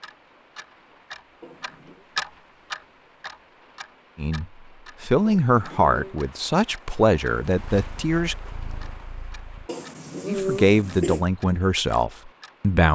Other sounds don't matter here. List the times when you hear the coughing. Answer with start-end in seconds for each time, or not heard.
1.4-2.0, 5.2-6.2, 9.7-11.2.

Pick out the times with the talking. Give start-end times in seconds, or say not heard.
4.2-8.3, 10.2-12.9.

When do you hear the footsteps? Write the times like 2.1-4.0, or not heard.
not heard.